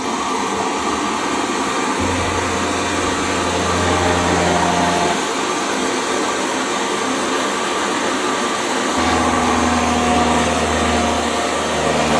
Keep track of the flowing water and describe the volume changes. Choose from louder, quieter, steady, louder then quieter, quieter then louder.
steady.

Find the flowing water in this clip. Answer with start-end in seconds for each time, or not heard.
0.0-12.1.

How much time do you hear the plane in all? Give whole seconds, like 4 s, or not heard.
6 s.